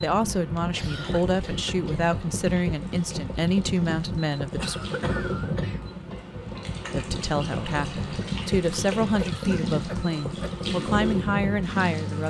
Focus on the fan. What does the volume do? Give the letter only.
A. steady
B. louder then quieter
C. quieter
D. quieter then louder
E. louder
A.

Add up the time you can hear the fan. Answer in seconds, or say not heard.
12 s.